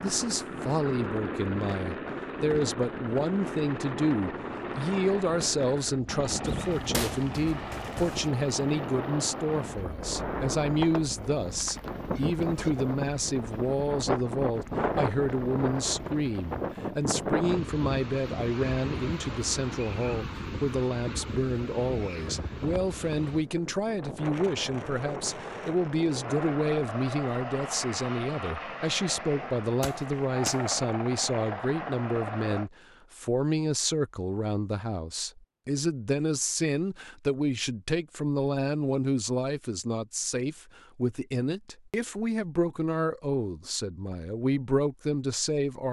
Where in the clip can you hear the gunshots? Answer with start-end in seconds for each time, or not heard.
6.4-8.3, 29.8-30.6.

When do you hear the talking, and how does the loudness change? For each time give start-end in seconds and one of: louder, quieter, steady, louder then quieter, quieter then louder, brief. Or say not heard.
0.0-45.8 steady.